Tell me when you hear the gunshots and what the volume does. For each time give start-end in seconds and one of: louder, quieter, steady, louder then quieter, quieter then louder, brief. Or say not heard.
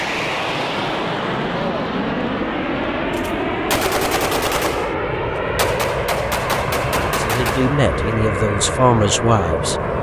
3.1-7.8 steady.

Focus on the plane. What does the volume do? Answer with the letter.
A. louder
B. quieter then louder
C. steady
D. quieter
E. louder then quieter
C.